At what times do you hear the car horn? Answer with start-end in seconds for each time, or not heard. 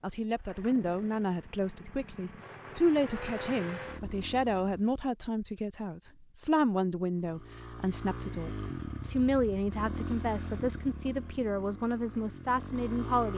not heard.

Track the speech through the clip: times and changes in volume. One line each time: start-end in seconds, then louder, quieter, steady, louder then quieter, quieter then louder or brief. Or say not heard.
0.0-13.3 steady.